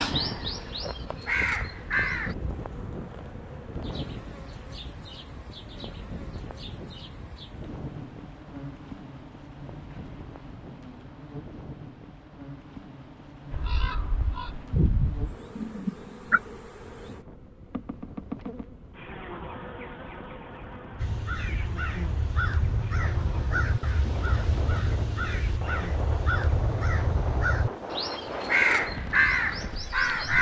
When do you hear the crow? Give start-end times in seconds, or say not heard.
0.0-2.4, 13.5-16.4, 20.9-30.3.